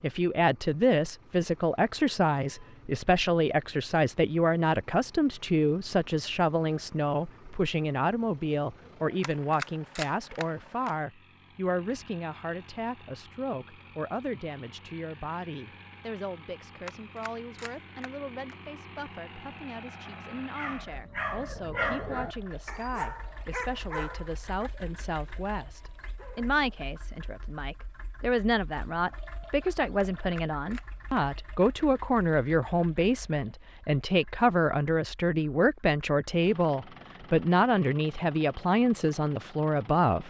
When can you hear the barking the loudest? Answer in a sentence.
The loudest moment of the barking is at 22 seconds.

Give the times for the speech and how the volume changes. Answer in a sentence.
The speech can be heard from 0.0 to 40.2 s, getting quieter then louder.